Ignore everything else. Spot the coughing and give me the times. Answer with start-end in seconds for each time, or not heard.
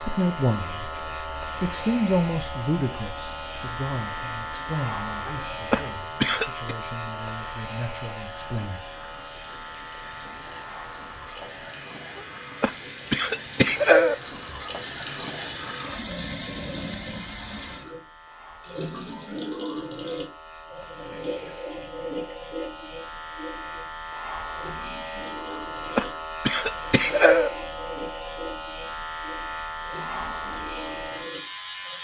5.2-6.7, 12.2-14.2, 25.5-27.5.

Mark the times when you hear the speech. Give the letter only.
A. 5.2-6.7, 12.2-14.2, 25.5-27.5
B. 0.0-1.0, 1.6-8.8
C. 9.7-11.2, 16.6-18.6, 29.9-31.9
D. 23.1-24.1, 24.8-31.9
B.